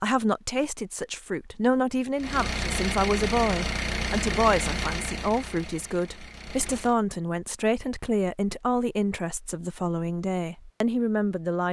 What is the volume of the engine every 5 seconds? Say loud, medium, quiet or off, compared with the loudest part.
loud, medium, off.